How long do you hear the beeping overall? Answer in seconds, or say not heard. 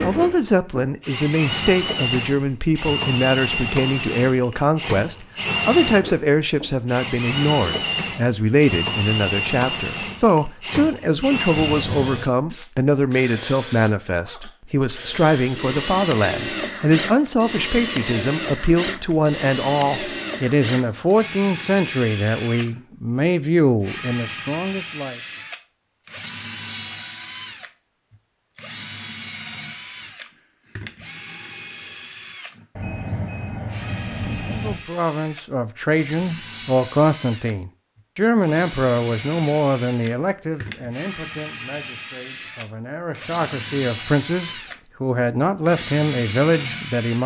3 s.